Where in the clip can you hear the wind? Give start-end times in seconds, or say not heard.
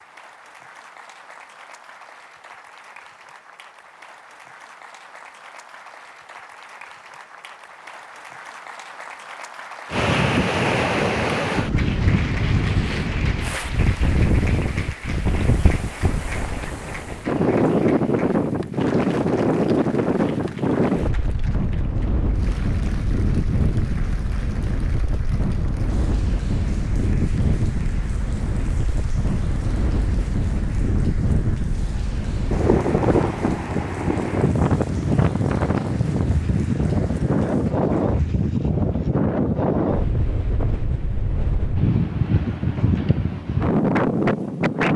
9.9-44.9.